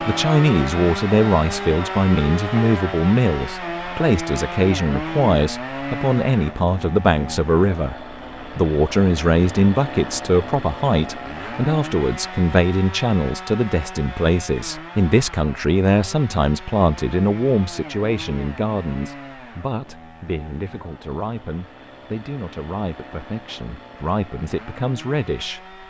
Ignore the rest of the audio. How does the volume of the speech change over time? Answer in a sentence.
The loudness of the speech goes down.